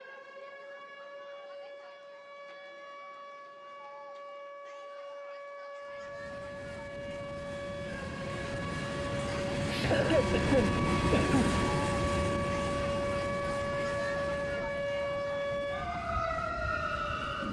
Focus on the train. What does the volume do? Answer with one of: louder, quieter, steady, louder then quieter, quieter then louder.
louder then quieter.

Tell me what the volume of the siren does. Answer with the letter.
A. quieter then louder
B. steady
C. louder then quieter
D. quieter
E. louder
E.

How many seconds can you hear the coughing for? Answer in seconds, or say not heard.
2 s.